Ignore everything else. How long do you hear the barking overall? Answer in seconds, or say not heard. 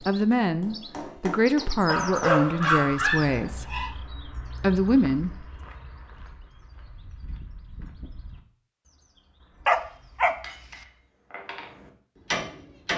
3 s.